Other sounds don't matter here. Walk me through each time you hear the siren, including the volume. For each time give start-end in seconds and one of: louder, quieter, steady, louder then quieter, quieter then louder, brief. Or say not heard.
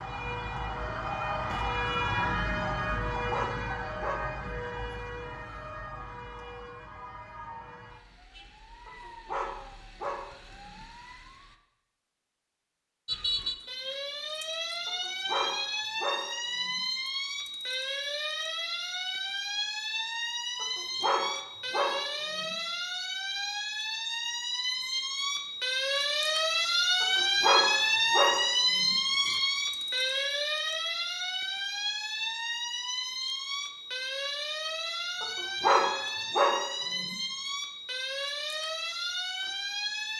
0.0-11.6 quieter
13.1-40.1 louder then quieter.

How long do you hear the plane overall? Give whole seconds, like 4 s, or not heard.
not heard.